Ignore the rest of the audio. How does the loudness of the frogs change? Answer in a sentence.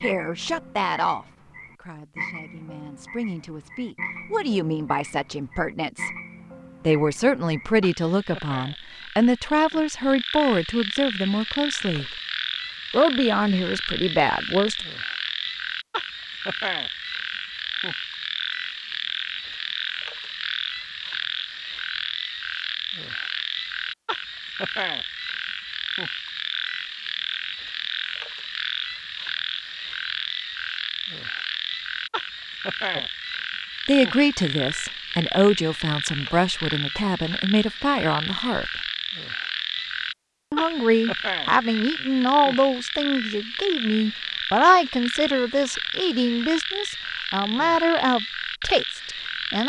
The loudness of the frogs goes up.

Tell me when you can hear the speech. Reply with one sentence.
The speech can be heard from 0.0 to 6.1 s, from 6.8 to 12.1 s, from 12.9 to 14.8 s, from 33.9 to 38.7 s and from 40.5 to 49.6 s.